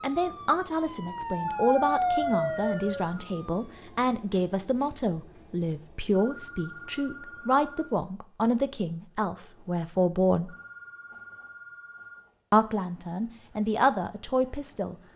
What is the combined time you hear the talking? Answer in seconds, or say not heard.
13 s.